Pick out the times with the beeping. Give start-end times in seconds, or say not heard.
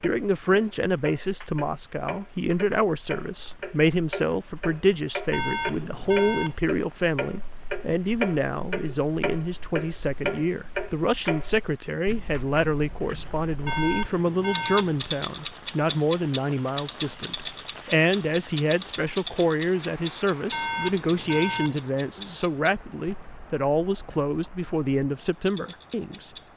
5.3-6.5, 13.7-15.1, 20.5-21.9.